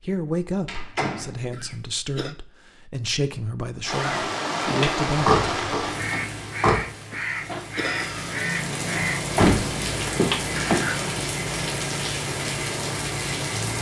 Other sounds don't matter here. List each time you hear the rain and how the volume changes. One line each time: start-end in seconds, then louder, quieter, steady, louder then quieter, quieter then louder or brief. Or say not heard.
3.8-13.7 quieter then louder.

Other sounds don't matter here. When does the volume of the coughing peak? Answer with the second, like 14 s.
8 s.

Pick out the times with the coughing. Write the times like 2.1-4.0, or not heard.
1.5-2.4, 7.1-8.3.